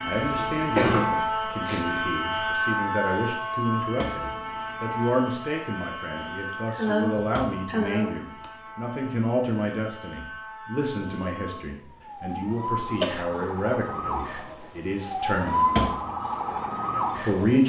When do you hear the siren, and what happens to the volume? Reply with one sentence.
You can hear the siren from 0.0 to 17.6 s, getting quieter then louder.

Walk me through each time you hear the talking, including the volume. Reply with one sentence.
The talking can be heard from 0.0 to 15.7 s, at a steady volume; and briefly from 17.1 to 17.6 s.